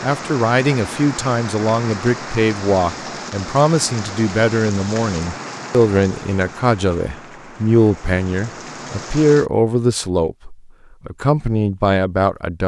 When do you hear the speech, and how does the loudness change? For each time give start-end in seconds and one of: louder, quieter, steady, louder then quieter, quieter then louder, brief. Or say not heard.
0.0-12.6 steady.